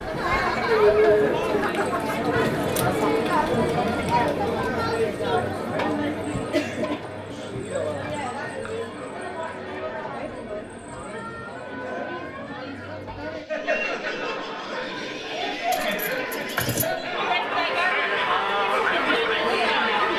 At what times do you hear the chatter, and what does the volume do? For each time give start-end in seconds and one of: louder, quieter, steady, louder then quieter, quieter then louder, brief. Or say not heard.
0.0-20.1 quieter then louder.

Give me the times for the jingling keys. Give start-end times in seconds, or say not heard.
15.7-16.9.